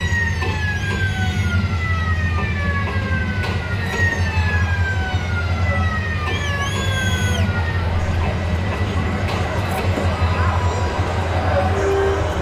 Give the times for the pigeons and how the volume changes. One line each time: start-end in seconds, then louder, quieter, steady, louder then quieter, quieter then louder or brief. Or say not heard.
not heard.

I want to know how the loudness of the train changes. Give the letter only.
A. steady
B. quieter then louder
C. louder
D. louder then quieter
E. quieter
A.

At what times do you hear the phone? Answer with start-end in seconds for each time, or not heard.
not heard.